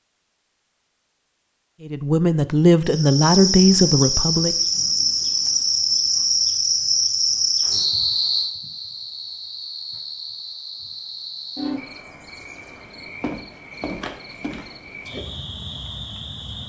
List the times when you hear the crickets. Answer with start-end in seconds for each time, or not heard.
2.9-16.6.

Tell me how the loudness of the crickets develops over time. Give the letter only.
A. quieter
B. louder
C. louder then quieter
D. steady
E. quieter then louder
A.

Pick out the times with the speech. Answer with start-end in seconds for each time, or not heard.
1.9-4.5.